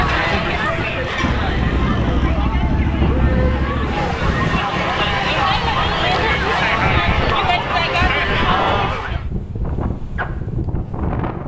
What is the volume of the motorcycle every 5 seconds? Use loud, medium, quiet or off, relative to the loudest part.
loud, loud, off.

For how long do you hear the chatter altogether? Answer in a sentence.
You can hear the chatter for 9 seconds altogether.